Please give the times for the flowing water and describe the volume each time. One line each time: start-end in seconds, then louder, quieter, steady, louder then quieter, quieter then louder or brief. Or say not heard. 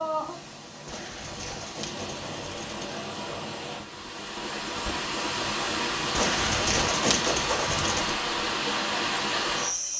0.0-9.9 louder.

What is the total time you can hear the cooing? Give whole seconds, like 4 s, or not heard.
4 s.